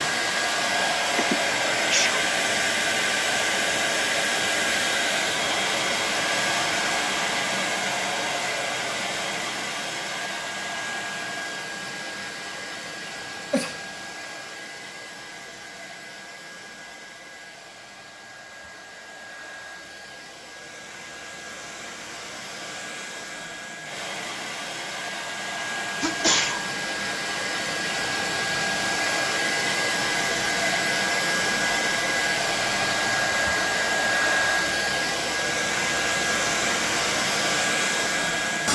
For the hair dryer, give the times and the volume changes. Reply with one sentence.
The hair dryer can be heard from 0.0 to 38.7 s, getting quieter then louder.